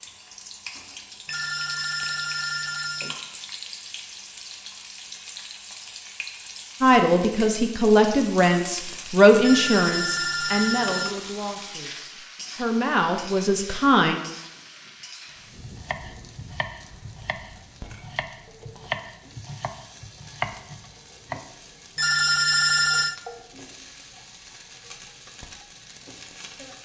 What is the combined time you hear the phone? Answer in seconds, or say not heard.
5 s.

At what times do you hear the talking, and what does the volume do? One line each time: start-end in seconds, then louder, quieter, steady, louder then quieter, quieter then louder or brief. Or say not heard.
6.8-14.2 quieter then louder.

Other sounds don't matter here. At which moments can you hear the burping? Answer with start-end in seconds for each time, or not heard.
not heard.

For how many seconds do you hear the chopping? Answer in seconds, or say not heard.
6 s.